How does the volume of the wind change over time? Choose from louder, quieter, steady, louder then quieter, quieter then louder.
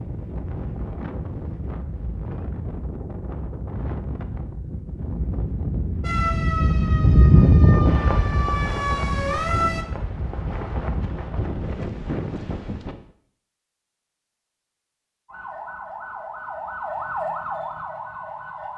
louder then quieter.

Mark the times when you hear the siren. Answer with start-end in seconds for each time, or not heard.
6.0-9.8, 15.2-18.7.